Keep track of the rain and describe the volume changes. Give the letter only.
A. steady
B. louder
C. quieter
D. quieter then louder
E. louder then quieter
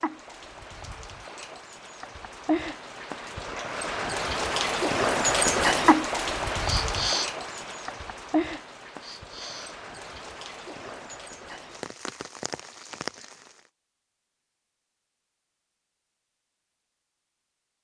E.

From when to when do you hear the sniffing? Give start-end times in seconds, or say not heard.
6.7-7.3, 9.0-9.8.